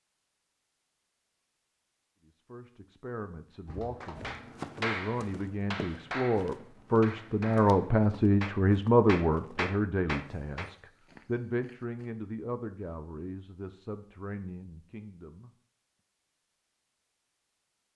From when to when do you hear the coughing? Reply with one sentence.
You can hear the coughing from 3.6 to 4.3 s.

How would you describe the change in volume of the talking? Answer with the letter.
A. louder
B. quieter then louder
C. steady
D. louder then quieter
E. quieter
D.